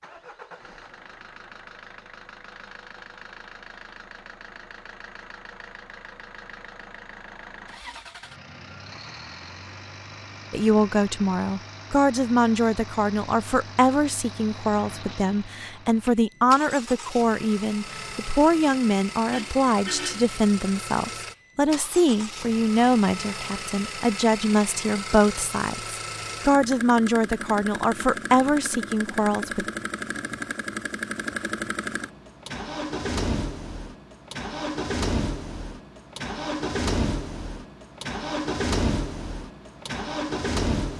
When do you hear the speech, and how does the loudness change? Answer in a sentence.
The speech can be heard from 10.5 to 29.6 s, at a steady volume.